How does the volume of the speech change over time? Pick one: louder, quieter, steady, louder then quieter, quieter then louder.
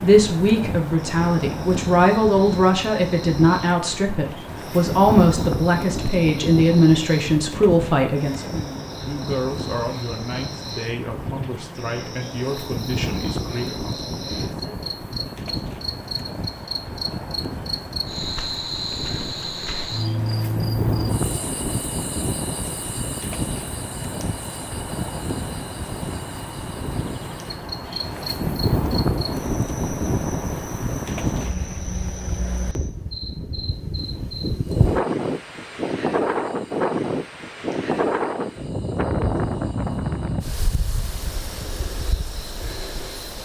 quieter.